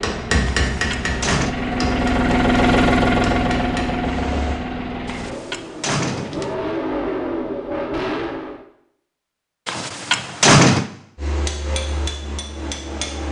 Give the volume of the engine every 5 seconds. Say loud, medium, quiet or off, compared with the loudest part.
loud, medium, off.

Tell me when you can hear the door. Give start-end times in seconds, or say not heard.
0.7-1.6, 5.0-6.5, 9.7-10.8.